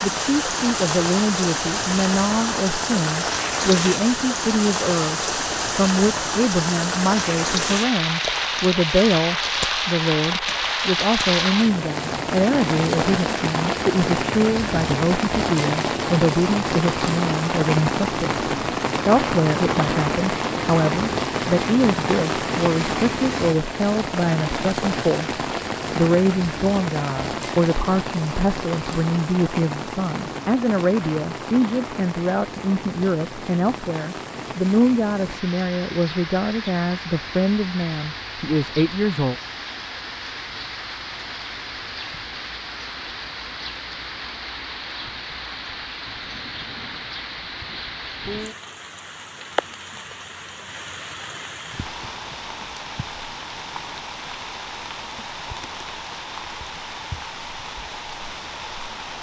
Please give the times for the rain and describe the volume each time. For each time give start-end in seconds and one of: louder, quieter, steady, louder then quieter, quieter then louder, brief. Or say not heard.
0.0-59.1 quieter.